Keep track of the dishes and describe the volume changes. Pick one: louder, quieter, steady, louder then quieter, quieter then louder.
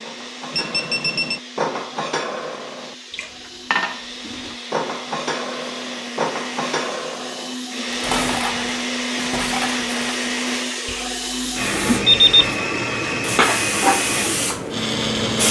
steady.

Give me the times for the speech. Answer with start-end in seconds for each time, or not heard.
not heard.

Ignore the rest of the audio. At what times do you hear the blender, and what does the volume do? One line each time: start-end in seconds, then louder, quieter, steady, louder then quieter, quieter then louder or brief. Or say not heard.
0.0-15.4 louder.